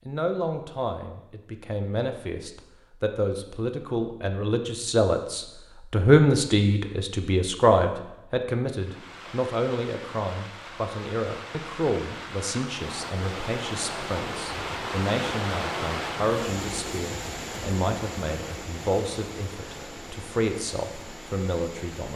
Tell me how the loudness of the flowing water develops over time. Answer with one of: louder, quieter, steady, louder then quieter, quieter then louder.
louder then quieter.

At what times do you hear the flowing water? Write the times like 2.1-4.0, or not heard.
8.7-22.1.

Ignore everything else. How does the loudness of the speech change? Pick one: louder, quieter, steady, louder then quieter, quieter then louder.
louder then quieter.